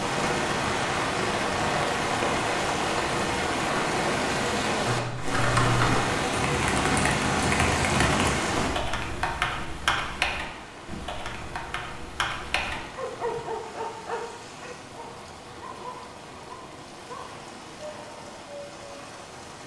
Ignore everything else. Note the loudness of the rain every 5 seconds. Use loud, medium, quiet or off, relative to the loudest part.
loud, loud, quiet, quiet.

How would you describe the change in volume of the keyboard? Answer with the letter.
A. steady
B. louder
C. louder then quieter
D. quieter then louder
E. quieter
E.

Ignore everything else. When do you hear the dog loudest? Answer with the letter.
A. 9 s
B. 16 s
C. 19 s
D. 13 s
D.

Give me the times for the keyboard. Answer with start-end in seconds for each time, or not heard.
4.8-13.4.